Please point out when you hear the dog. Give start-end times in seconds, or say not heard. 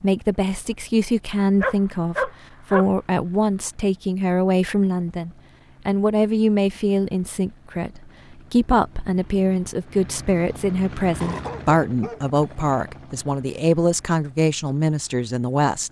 1.6-2.9, 11.2-12.8.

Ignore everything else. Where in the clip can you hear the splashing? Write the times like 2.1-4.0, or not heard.
not heard.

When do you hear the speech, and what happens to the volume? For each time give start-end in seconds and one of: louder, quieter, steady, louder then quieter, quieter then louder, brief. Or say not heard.
0.0-15.8 steady.